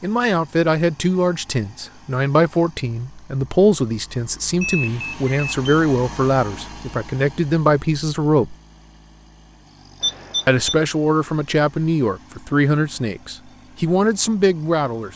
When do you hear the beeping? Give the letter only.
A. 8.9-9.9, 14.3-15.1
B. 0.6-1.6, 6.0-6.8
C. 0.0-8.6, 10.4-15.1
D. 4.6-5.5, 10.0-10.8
D.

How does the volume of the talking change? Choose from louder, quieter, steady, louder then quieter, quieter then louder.
steady.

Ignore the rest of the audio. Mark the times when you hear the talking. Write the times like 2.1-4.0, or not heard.
0.0-8.6, 10.4-15.1.